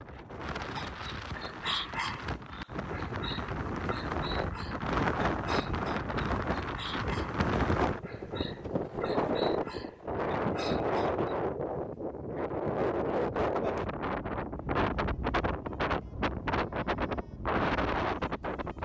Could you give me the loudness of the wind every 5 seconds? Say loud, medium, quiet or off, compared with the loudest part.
medium, loud, loud, loud.